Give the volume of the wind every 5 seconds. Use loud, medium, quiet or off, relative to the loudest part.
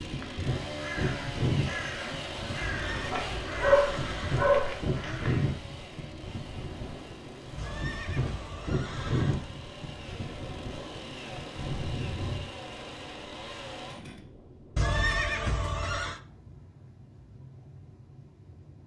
loud, loud, medium, quiet.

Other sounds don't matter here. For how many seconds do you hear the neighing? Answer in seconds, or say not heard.
5 s.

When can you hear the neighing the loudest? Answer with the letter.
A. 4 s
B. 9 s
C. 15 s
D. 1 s
C.